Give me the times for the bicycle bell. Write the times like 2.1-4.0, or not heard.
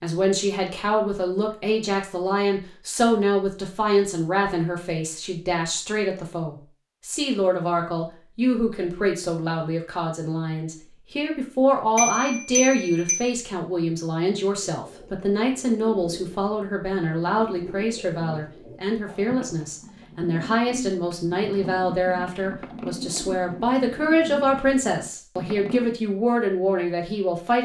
11.9-13.2.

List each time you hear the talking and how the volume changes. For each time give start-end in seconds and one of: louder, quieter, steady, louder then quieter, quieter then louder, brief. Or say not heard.
0.0-27.6 steady.